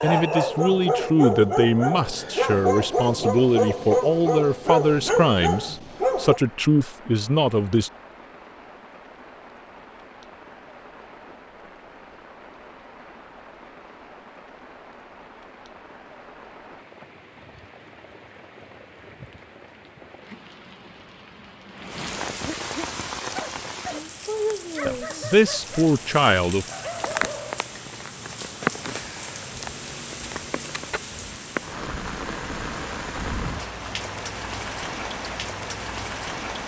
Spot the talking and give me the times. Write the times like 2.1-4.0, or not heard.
0.0-7.9, 24.9-26.6.